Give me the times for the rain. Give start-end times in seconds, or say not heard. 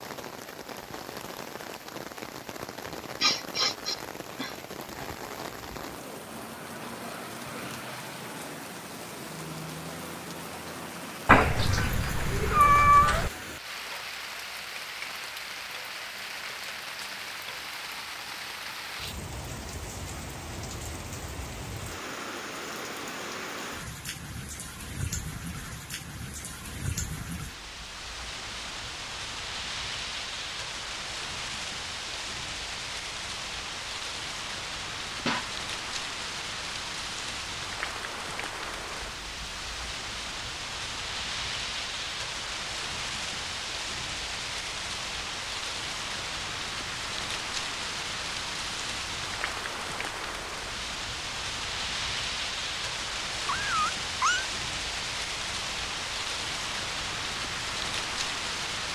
0.0-58.9.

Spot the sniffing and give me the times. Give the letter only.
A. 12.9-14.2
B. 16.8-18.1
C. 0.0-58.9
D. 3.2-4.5
D.